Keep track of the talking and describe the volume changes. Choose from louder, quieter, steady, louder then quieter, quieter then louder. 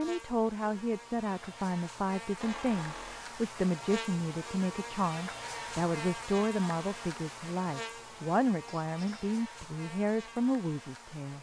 steady.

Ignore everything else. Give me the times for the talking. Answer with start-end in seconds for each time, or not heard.
0.0-11.3.